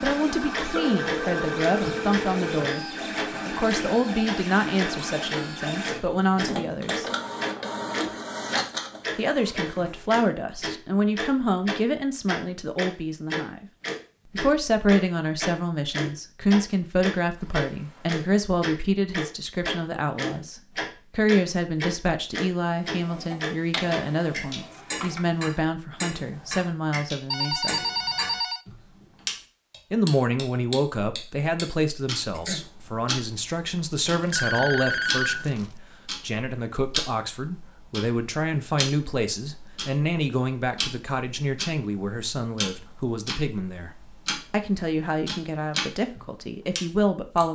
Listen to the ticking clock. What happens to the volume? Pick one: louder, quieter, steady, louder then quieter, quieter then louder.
quieter.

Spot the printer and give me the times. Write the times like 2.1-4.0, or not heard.
0.0-10.1, 22.6-25.2.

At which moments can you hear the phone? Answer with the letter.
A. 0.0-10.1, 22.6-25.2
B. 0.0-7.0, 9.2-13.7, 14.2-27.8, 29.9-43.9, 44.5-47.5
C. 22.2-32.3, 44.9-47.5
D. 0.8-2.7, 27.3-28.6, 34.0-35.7
D.